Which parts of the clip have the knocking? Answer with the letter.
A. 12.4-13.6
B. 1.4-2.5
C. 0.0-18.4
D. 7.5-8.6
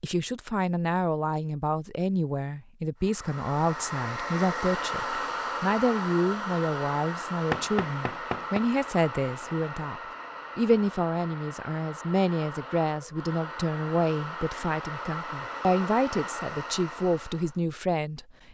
D.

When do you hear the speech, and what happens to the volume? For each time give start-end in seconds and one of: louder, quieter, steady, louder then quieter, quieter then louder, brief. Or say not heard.
0.0-18.4 steady.